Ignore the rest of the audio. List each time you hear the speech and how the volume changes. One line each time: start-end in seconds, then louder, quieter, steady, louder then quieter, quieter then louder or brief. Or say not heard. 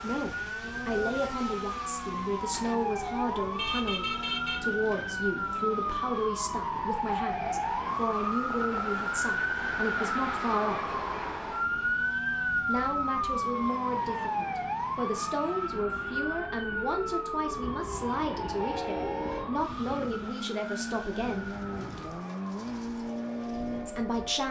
0.0-10.9 steady
12.7-21.5 steady
23.9-24.4 brief.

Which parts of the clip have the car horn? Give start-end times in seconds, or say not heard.
3.5-4.8, 17.6-19.4.